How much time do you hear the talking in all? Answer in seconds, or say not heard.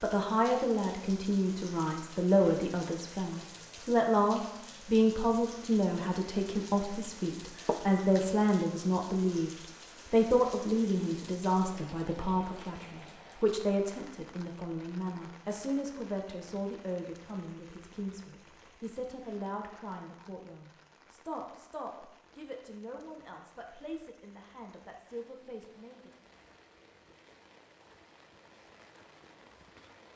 26 s.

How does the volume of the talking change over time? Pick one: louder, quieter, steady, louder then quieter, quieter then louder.
quieter.